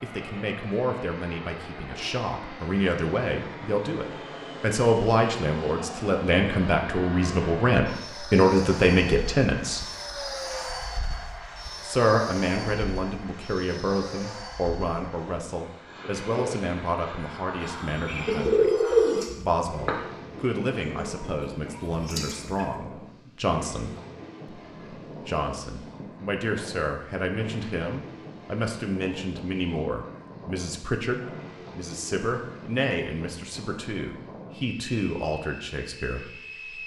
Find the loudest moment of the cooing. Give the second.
19 s.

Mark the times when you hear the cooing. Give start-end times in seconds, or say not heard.
17.6-22.8.